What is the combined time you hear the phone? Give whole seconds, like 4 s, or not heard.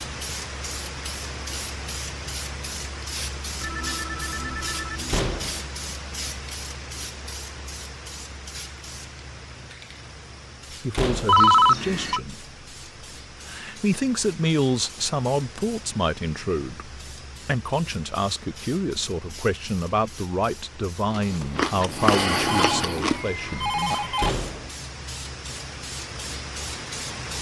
4 s.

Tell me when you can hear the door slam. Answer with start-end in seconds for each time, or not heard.
5.0-5.7, 10.9-11.4, 24.1-24.7.